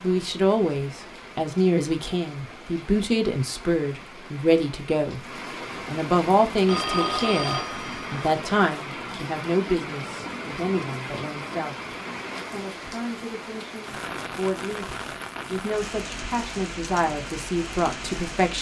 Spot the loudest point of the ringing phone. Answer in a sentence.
The loudest moment of the ringing phone is at 7 seconds.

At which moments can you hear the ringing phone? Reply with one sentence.
You can hear the ringing phone from 6.7 to 8.2 s.